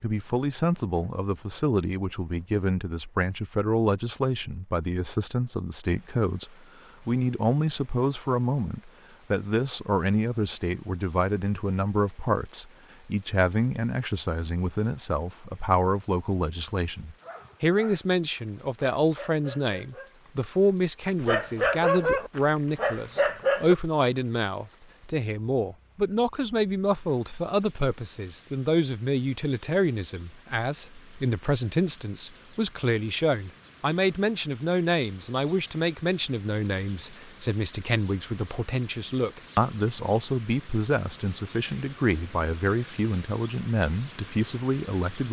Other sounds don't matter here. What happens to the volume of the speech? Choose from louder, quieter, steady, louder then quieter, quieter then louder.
steady.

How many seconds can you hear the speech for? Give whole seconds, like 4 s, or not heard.
45 s.